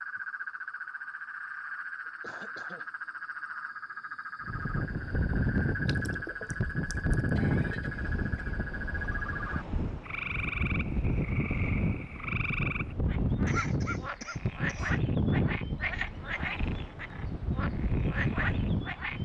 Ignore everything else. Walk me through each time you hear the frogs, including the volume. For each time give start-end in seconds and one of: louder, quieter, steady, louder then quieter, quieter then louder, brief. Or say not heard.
0.0-19.2 steady.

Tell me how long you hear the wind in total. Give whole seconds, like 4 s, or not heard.
15 s.